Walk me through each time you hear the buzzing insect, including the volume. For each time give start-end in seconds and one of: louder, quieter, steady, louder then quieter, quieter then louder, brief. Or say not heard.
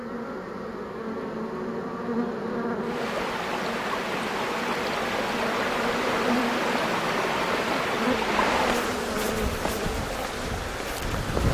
0.0-11.4 steady.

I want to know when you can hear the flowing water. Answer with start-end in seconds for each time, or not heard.
2.8-11.4.